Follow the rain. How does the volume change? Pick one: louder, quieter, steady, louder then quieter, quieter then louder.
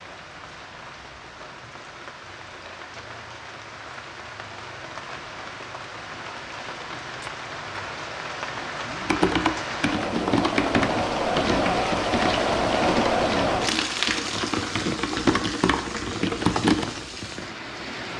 louder then quieter.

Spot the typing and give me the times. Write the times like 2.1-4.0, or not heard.
9.0-16.9.